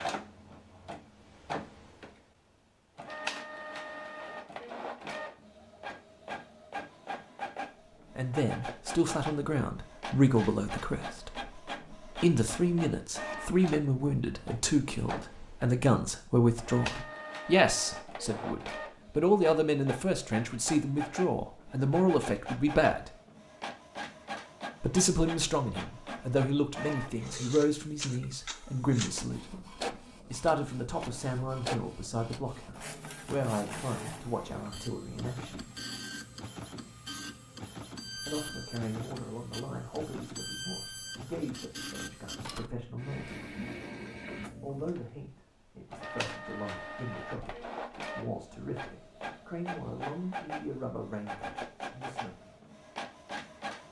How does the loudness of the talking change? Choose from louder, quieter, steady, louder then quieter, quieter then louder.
quieter.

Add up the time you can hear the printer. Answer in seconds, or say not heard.
54 s.